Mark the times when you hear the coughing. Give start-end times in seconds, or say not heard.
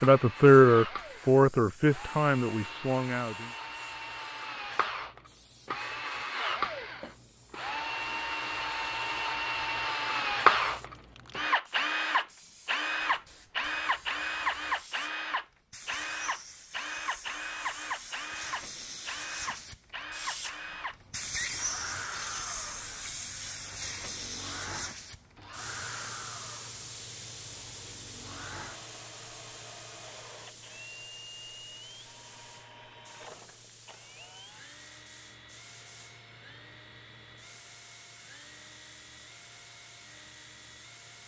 not heard.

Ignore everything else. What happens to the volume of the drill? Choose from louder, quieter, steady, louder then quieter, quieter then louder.
louder then quieter.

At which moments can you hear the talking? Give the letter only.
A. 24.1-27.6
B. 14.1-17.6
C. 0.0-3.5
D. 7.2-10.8
C.